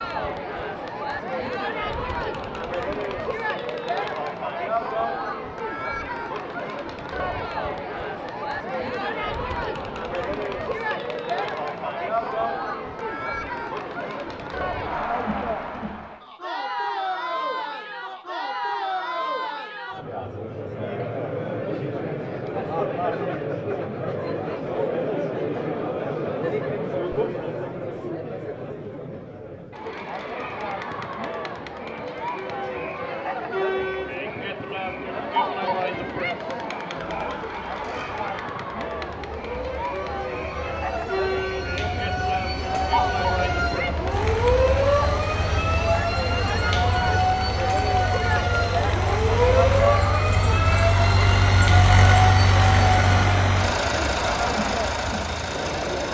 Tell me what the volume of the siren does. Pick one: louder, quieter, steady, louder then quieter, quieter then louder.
louder.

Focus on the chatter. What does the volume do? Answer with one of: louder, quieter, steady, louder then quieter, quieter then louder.
steady.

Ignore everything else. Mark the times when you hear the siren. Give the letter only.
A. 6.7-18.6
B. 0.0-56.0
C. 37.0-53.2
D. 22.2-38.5
C.